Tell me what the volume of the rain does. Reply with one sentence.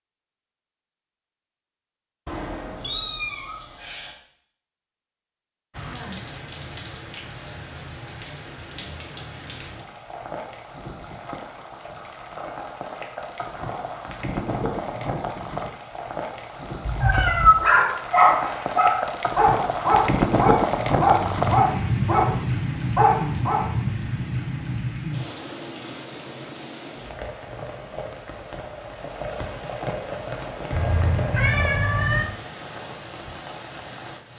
The loudness of the rain goes up, then down.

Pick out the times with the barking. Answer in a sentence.
The barking can be heard from 17.1 to 23.6 s.